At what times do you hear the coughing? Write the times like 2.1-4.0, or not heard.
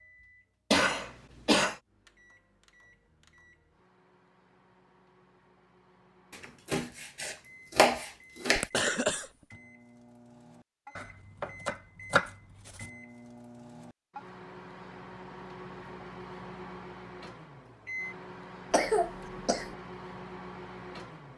0.7-1.8, 8.6-9.2, 18.7-19.8.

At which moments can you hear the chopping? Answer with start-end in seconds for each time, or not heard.
6.3-8.7, 10.9-12.9.